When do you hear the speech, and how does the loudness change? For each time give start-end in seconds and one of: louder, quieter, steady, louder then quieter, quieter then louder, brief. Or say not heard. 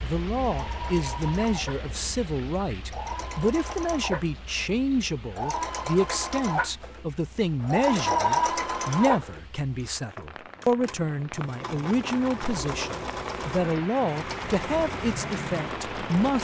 0.0-16.3 steady.